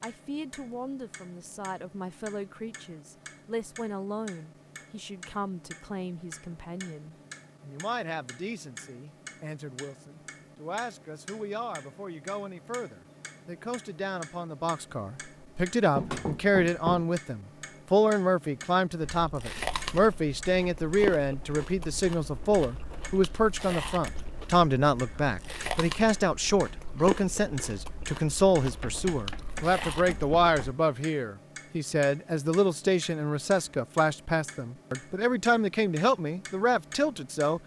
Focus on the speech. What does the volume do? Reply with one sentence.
The volume of the speech goes up.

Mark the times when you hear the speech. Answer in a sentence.
The speech can be heard from 0.0 to 37.6 s.